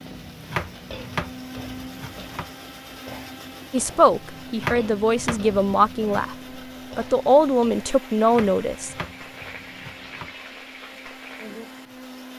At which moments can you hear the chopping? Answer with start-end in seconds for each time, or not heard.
0.5-2.5, 4.6-6.3, 8.3-10.3.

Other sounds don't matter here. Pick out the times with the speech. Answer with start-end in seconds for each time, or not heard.
3.7-6.3, 7.0-8.9.